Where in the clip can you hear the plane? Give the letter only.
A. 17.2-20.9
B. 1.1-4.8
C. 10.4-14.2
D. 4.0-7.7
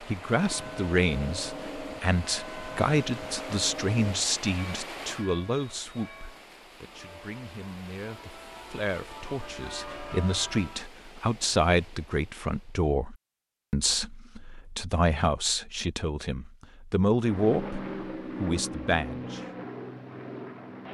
A.